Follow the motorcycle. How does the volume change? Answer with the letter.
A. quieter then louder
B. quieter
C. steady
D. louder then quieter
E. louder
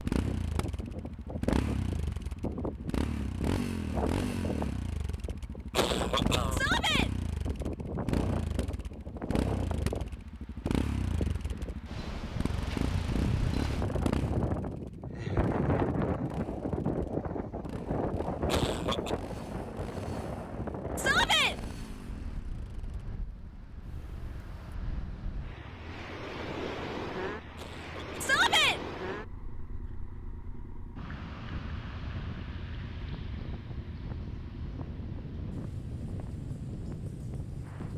B.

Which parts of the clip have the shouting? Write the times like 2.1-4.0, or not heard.
6.5-7.1, 20.9-21.6, 28.2-28.8.